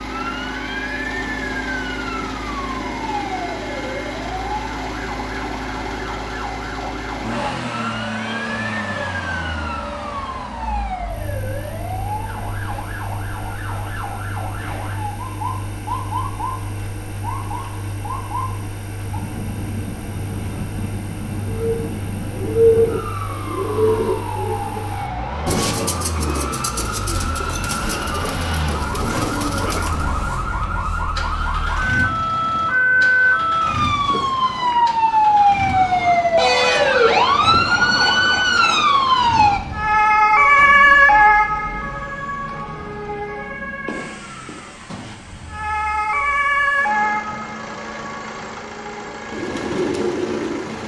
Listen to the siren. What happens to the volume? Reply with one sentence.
The loudness of the siren goes up.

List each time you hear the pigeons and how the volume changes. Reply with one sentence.
You can hear the pigeons from 21.5 to 30.1 s, getting quieter; and briefly from 49.3 to 50.8 s.